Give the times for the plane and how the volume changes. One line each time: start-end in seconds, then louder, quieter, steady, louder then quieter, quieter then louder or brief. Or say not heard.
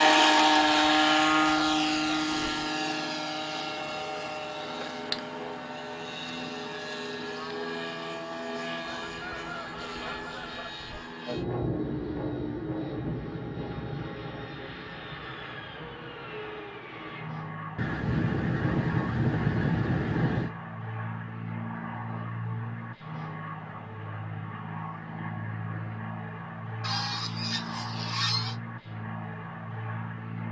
0.0-30.4 quieter.